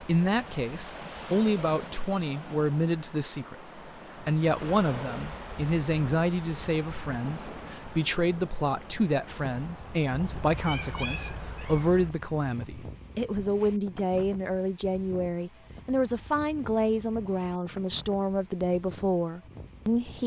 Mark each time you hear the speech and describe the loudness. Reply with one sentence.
The speech can be heard from 0.0 to 20.2 s, at a steady volume.